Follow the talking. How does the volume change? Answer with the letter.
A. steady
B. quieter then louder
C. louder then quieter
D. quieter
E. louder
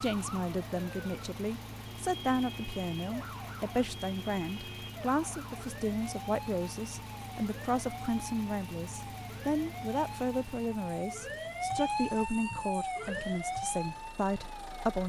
A.